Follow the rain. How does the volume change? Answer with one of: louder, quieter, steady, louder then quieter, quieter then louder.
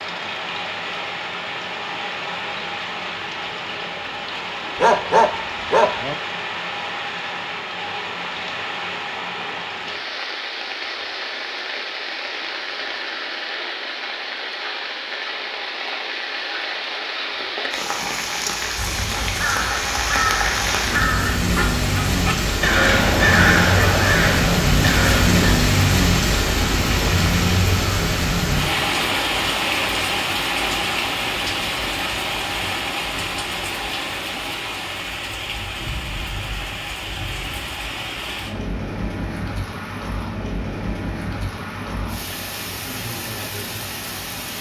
louder then quieter.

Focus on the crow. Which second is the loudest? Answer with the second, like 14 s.
23 s.